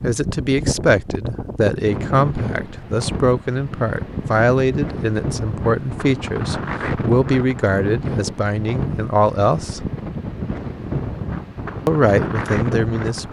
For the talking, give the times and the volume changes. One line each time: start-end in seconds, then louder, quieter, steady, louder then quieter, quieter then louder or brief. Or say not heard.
0.0-9.9 steady
11.8-13.2 brief.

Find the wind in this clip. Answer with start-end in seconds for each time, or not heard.
0.0-13.2.